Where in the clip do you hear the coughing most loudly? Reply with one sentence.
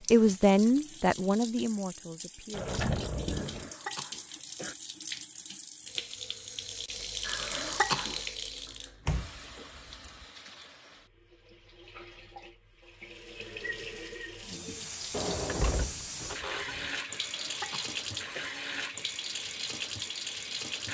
The loudest moment of the coughing is at 8 seconds.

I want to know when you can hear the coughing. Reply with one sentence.
You can hear the coughing from 3.3 to 4.8 s, from 7.2 to 8.2 s and from 17.1 to 18.5 s.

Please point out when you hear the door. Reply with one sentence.
You can hear the door from 2.5 to 3.8 s, from 9.1 to 10.2 s and from 15.1 to 16.9 s.